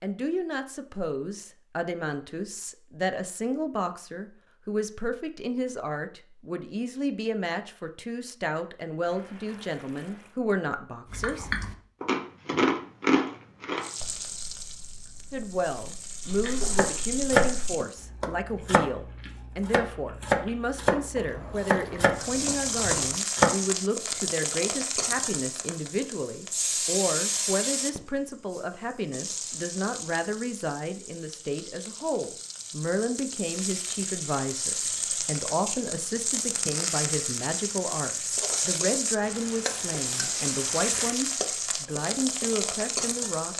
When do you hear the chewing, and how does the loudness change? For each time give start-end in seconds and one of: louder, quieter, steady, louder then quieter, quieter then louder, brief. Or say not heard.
11.1-21.6 quieter.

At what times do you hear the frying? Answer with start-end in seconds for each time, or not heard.
13.8-17.9, 22.1-43.5.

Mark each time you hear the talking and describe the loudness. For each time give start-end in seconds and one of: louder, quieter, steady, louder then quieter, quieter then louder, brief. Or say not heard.
0.0-11.5 steady
15.3-43.5 steady.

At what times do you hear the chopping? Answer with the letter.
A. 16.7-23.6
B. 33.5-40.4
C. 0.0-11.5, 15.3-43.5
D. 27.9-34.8
A.